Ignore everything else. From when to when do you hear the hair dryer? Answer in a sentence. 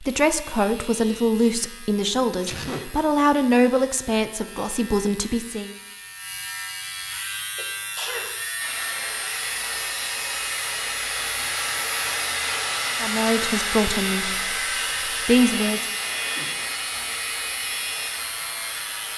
You can hear the hair dryer from 8.6 to 19.1 s.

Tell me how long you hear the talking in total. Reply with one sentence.
You can hear the talking for 8 seconds altogether.